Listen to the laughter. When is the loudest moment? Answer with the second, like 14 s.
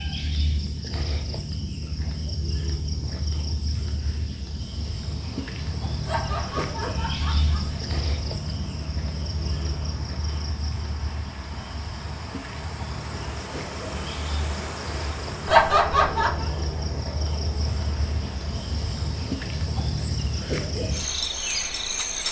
16 s.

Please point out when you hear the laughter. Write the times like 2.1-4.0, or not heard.
6.0-8.0, 15.4-16.4.